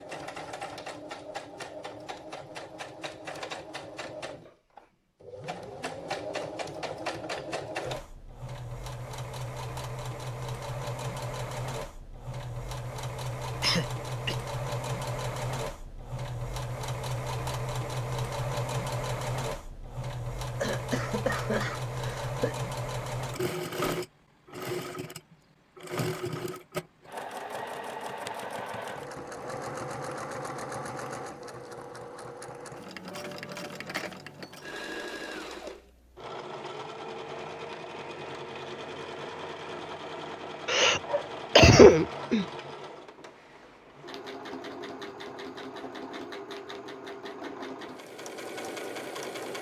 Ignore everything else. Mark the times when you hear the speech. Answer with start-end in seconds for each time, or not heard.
not heard.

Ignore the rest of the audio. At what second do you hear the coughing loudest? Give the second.
42 s.